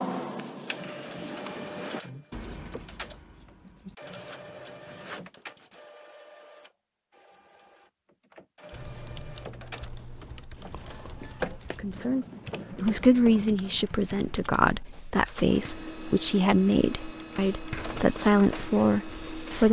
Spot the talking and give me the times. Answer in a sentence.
The talking can be heard from 11.8 to 19.6 s.